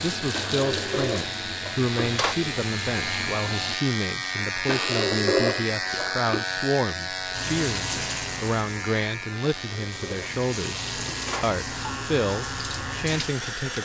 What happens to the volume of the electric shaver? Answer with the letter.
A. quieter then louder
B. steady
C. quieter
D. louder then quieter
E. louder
D.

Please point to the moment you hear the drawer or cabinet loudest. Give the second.
5 s.